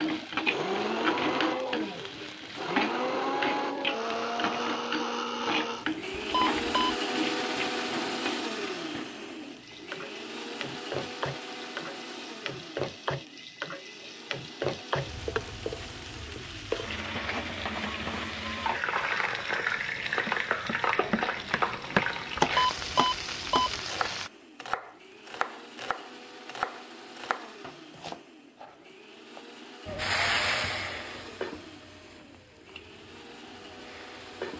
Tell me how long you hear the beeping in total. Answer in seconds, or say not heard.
2 s.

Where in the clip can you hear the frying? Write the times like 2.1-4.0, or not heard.
0.0-24.3, 29.9-34.5.